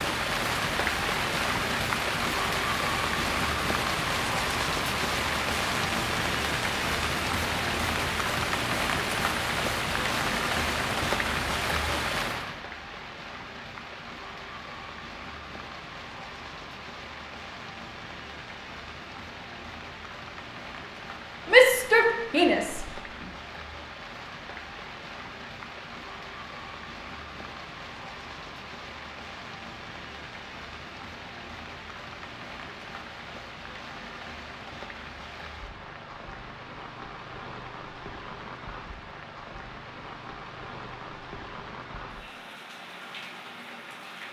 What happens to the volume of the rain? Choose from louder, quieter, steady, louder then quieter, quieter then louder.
quieter.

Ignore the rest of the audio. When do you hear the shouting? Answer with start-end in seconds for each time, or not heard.
21.4-22.9.